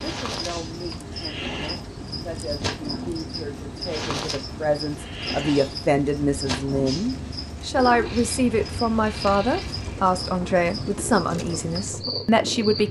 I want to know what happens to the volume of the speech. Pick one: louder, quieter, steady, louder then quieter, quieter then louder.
louder.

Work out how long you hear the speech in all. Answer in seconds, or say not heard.
13 s.